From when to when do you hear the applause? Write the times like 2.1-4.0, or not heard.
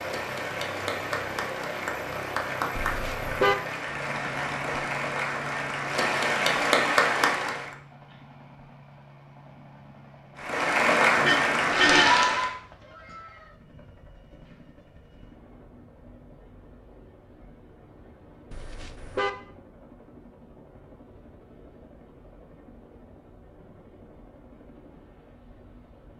0.0-7.7, 10.4-12.6.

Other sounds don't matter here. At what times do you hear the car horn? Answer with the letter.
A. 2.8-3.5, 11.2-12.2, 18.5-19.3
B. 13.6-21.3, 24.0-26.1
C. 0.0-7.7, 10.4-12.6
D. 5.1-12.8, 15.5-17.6
A.